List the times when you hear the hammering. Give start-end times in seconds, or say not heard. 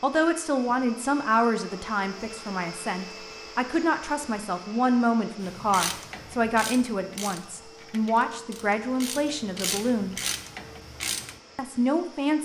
not heard.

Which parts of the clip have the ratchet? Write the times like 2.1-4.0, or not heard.
5.4-11.4.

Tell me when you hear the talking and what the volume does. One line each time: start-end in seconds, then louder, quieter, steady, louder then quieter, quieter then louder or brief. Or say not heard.
0.0-10.2 steady
11.6-12.4 brief.